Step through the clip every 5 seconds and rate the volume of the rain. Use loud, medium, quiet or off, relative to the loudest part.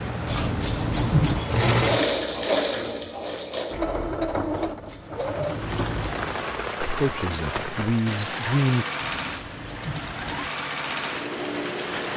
off, loud, loud.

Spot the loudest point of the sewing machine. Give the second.
2 s.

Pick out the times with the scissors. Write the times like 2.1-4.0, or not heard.
0.2-1.4, 4.5-6.4, 9.0-10.6.